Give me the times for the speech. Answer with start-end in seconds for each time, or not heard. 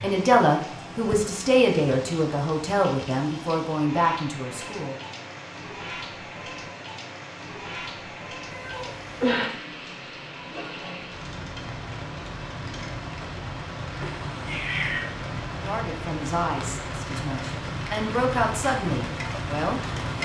0.0-5.0, 15.6-20.2.